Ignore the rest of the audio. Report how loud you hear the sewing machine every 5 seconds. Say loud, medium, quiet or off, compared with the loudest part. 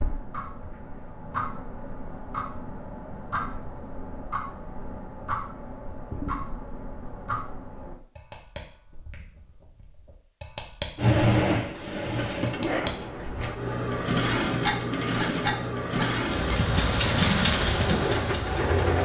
off, off, loud, loud.